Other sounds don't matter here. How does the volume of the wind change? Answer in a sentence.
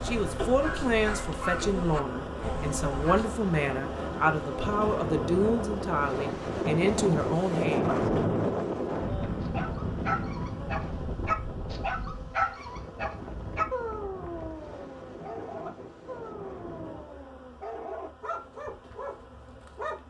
The volume of the wind goes up, then down.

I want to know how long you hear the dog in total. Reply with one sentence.
The dog can be heard for 14 seconds in total.